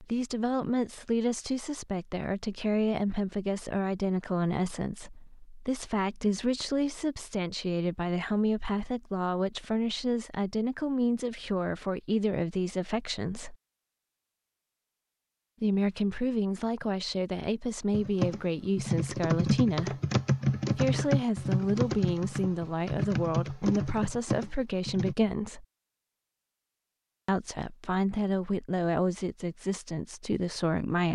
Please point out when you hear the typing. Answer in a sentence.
The typing can be heard from 17.9 to 25.1 s.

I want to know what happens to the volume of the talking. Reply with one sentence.
The loudness of the talking stays about the same.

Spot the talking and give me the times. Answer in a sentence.
The talking can be heard from 0.0 to 13.6 s, from 15.6 to 19.9 s, from 20.8 to 25.6 s and from 27.2 to 31.1 s.